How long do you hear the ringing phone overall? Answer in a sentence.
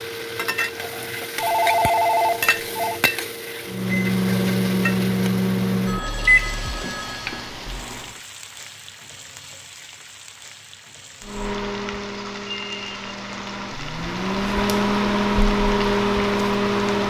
The ringing phone can be heard for 4 seconds in total.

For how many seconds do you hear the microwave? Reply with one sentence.
The microwave can be heard for 10 seconds in total.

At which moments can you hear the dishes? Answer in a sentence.
The dishes can't be heard in this clip.